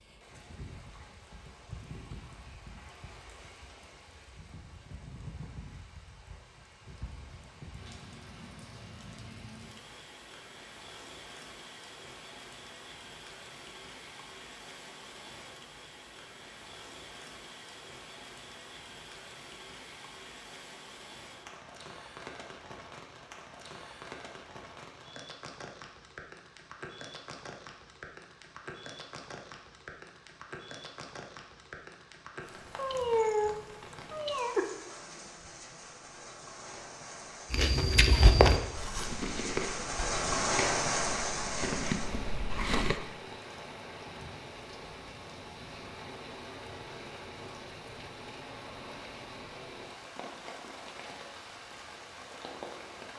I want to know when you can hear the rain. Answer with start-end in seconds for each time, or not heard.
0.0-53.1.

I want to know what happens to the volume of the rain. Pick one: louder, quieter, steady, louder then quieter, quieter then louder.
louder then quieter.